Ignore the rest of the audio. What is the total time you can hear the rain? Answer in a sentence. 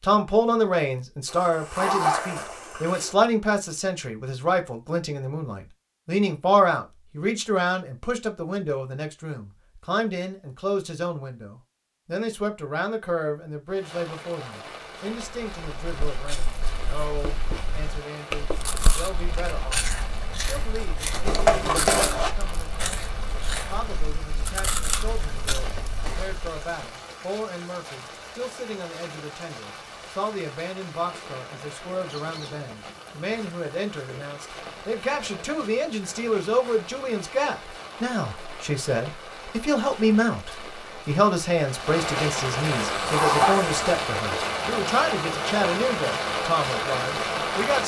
The rain can be heard for 34 seconds in total.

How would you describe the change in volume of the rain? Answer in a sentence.
The loudness of the rain goes up.